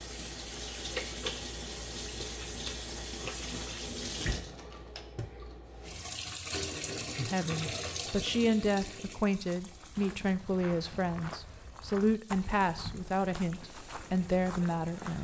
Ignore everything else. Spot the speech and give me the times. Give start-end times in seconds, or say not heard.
7.2-15.1.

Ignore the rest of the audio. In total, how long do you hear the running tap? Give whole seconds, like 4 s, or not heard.
15 s.